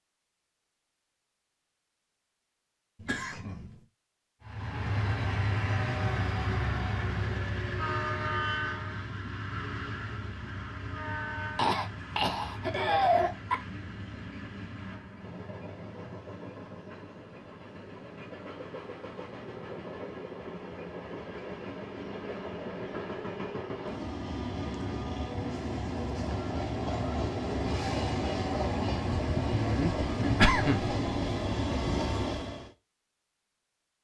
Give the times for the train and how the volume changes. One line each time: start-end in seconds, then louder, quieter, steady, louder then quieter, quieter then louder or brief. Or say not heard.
4.4-32.7 quieter then louder.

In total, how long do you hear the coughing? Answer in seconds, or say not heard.
4 s.